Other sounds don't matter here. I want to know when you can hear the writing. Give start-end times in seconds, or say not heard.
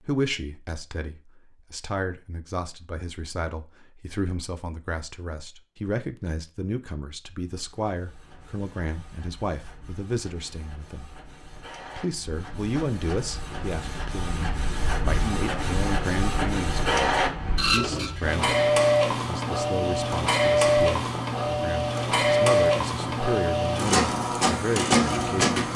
not heard.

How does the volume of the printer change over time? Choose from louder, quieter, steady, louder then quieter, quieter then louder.
louder.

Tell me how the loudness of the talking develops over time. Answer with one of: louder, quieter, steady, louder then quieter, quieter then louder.
steady.